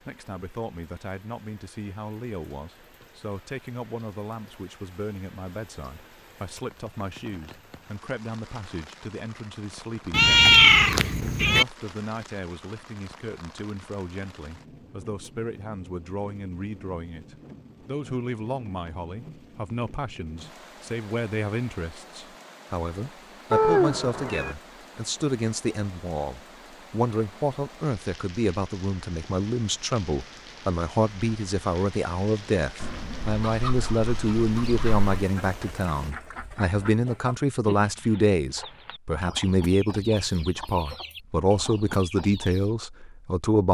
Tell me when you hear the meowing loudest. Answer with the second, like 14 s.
11 s.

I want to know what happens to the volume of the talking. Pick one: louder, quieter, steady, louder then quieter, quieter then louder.
louder.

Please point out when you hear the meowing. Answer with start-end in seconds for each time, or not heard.
10.1-11.7, 23.5-24.6, 32.8-35.2.